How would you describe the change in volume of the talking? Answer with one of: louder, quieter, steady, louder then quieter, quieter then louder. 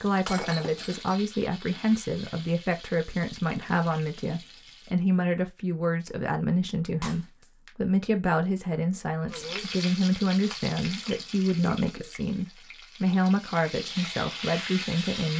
steady.